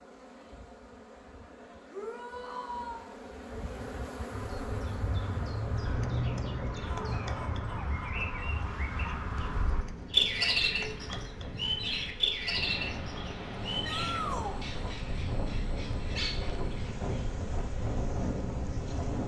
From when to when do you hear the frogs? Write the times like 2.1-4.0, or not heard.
not heard.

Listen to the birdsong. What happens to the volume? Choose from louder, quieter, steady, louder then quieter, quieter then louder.
louder then quieter.